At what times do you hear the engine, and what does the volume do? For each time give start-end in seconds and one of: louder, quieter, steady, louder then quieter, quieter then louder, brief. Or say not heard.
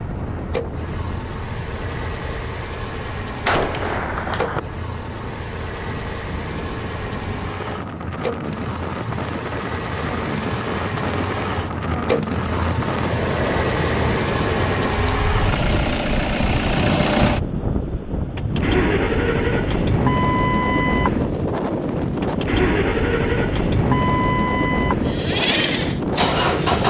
0.0-26.8 louder.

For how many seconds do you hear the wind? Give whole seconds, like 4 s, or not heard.
27 s.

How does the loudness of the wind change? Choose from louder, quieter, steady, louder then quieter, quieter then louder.
louder.